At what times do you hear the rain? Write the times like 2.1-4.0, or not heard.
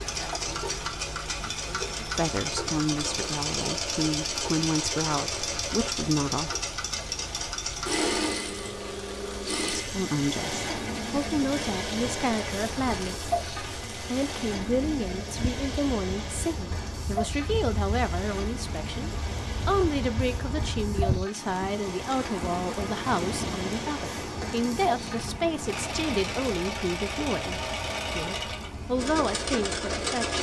0.0-30.3.